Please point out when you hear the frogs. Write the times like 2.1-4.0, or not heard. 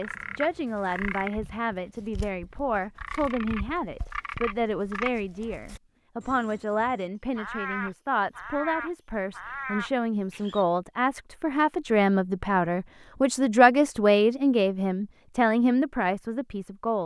0.0-10.7.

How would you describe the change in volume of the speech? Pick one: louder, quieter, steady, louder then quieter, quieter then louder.
louder.